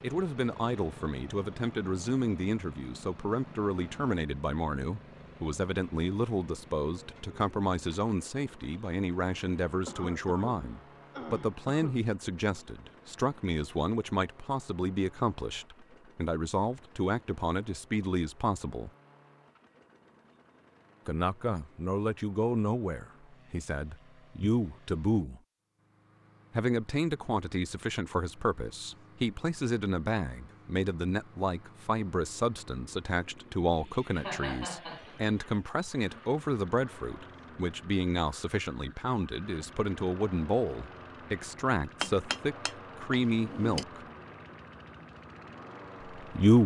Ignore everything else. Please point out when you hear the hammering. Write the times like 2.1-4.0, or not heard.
42.0-43.9.